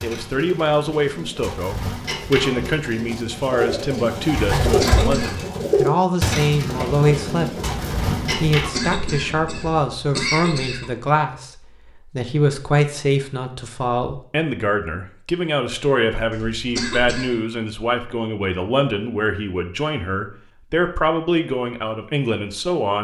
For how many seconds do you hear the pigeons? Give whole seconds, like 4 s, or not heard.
9 s.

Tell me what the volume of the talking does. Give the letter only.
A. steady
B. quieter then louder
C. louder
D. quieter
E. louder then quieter
A.